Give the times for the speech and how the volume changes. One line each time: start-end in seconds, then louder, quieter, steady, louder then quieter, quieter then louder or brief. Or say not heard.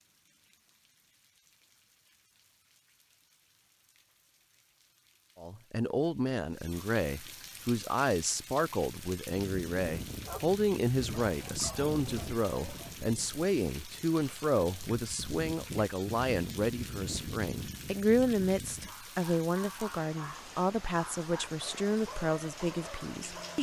5.3-23.5 steady.